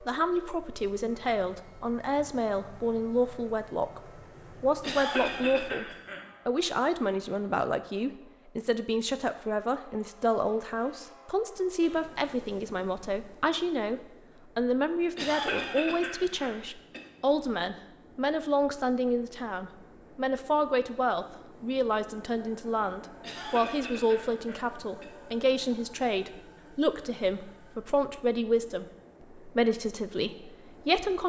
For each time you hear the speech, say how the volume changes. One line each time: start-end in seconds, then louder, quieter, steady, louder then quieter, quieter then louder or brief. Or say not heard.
0.0-31.2 steady.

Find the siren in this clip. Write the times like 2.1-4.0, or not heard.
not heard.